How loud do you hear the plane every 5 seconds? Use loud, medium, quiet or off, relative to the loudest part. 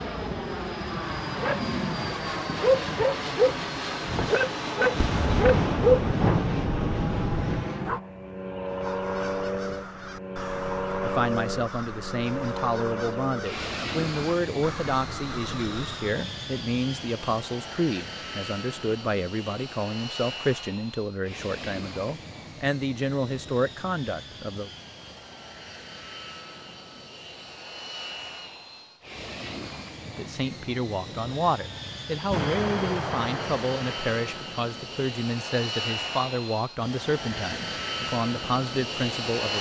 loud, loud, loud, medium, medium, medium, medium, loud.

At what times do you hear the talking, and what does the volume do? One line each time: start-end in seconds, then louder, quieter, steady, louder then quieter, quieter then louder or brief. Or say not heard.
11.0-24.7 steady
30.1-39.5 steady.